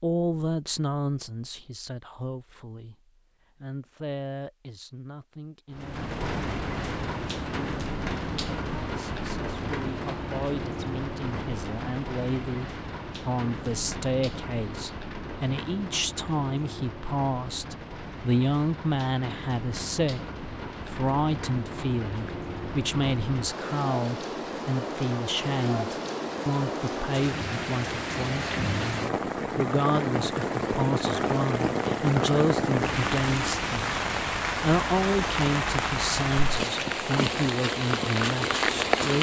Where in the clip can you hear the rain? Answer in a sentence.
You can hear the rain from 5.7 to 39.1 s.